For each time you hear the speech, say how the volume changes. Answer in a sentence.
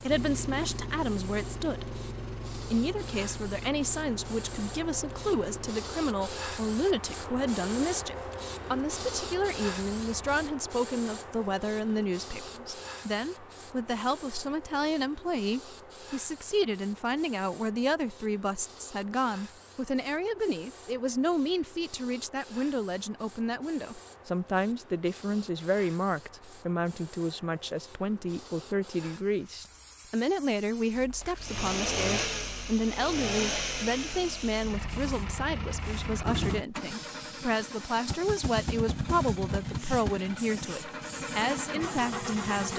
The speech can be heard from 0.0 to 42.7 s, at a steady volume.